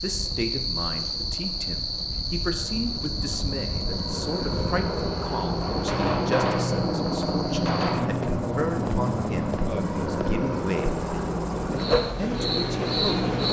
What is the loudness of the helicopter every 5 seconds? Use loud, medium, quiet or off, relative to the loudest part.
medium, loud, loud.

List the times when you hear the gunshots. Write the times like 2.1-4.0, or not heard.
5.6-8.1.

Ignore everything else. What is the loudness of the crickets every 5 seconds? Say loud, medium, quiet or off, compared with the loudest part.
loud, medium, loud.